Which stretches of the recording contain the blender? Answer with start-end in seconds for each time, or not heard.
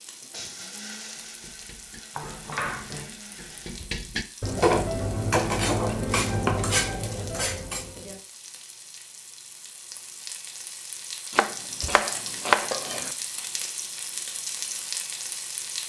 0.0-3.9.